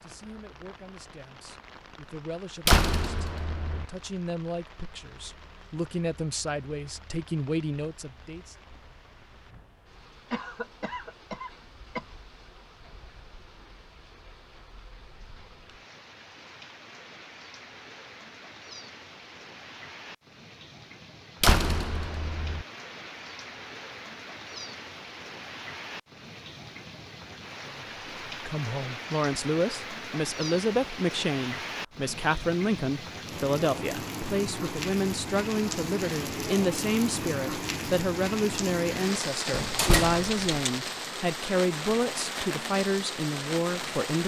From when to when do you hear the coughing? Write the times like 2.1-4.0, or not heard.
10.3-12.1.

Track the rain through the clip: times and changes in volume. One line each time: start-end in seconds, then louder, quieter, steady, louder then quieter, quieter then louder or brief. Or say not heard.
0.0-44.2 louder.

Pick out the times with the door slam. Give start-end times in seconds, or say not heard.
2.6-3.9, 21.4-22.6, 39.5-40.5.